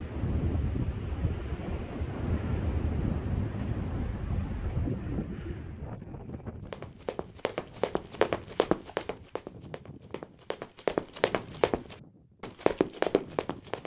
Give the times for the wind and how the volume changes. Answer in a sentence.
The wind can be heard from 0.0 to 13.8 s, getting quieter.